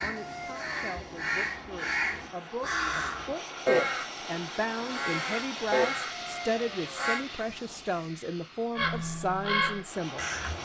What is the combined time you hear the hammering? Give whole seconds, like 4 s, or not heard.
not heard.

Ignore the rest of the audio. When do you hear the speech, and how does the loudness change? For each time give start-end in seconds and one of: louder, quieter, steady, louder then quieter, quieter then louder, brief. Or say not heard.
0.0-10.2 louder.